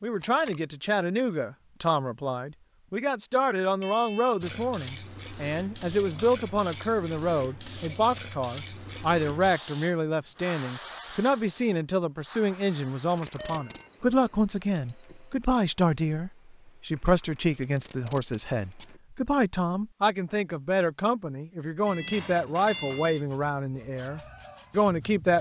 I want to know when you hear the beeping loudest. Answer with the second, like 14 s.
23 s.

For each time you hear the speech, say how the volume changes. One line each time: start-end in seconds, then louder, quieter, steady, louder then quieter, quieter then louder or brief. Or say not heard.
0.0-25.3 steady.